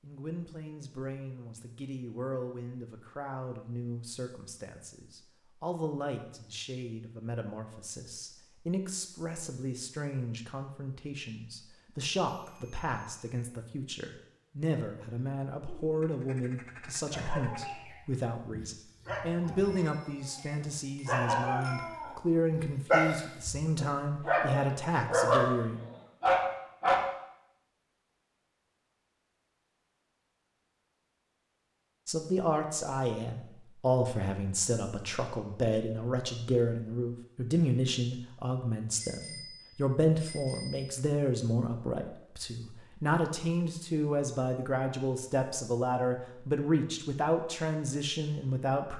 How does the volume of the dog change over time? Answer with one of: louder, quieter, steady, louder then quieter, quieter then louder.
louder.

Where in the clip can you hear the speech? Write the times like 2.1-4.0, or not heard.
0.0-25.8, 32.0-48.9.